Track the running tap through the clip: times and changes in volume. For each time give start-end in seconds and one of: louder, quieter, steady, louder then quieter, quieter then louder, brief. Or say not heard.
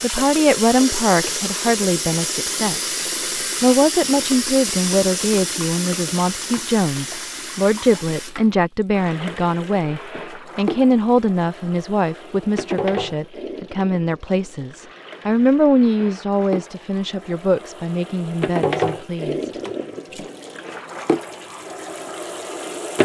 0.0-23.0 quieter then louder.